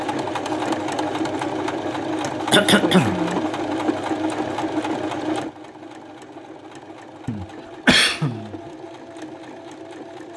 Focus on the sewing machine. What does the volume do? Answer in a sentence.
The volume of the sewing machine goes down.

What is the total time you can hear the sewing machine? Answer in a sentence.
You can hear the sewing machine for 10 seconds altogether.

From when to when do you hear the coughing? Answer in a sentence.
The coughing can be heard from 2.5 to 3.1 s and from 7.2 to 8.6 s.